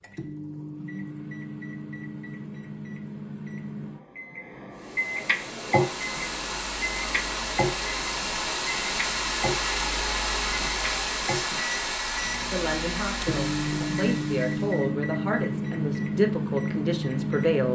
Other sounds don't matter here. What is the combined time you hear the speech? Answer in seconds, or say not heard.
5 s.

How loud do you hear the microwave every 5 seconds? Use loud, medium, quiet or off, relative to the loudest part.
medium, loud, loud, loud.